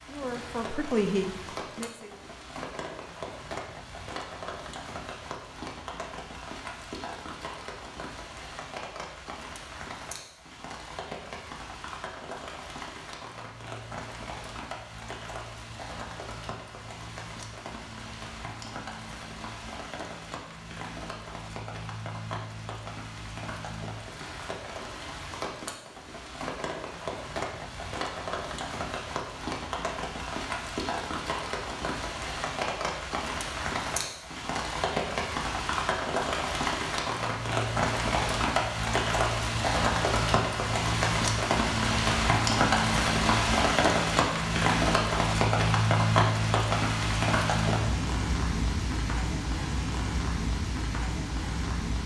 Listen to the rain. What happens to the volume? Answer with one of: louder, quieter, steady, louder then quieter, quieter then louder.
louder.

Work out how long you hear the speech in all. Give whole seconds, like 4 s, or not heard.
2 s.